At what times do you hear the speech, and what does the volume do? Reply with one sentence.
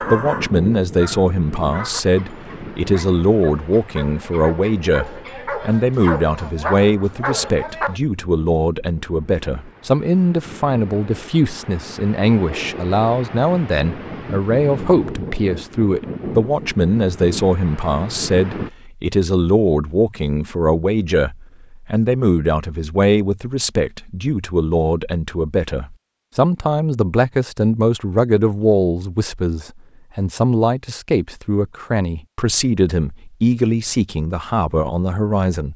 You can hear the speech from 0.0 to 35.7 s, at a steady volume.